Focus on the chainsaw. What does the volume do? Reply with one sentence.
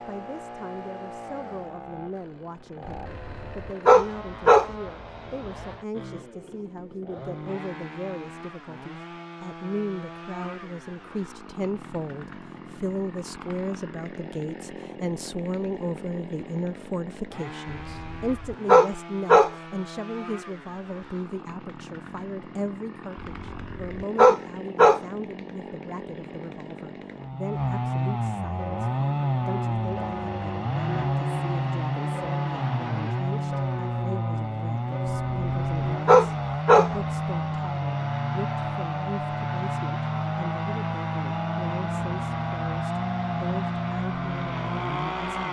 The loudness of the chainsaw goes up.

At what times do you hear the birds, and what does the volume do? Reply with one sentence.
The birds can't be heard in this clip.